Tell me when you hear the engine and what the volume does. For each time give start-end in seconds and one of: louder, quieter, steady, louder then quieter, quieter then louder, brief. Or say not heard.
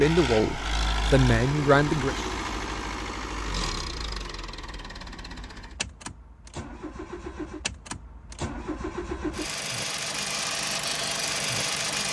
0.0-12.0 quieter then louder.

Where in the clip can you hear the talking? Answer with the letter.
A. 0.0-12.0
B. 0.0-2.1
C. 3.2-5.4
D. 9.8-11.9
B.